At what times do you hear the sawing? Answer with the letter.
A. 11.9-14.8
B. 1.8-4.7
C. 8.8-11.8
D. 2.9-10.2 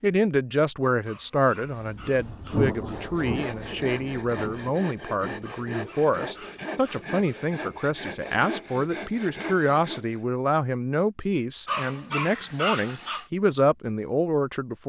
D.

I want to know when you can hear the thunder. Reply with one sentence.
The thunder can be heard from 1.8 to 4.7 s.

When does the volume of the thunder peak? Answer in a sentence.
The loudest moment of the thunder is at 3 seconds.